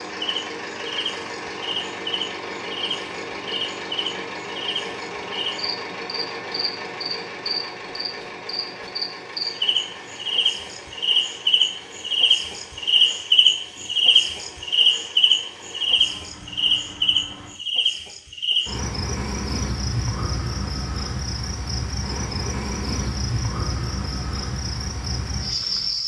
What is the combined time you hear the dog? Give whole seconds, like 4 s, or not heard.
not heard.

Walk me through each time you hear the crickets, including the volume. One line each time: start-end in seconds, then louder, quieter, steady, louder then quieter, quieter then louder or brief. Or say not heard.
0.2-26.0 louder then quieter.